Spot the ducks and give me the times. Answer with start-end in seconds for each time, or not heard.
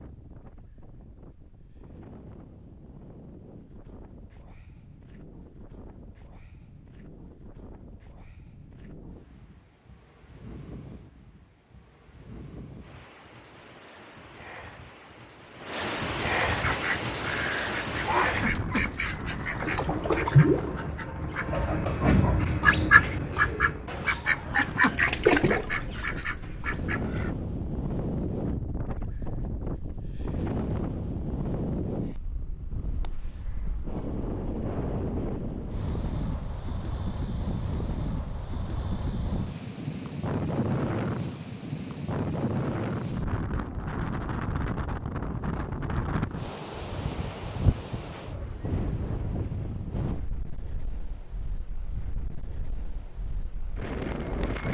16.6-27.4.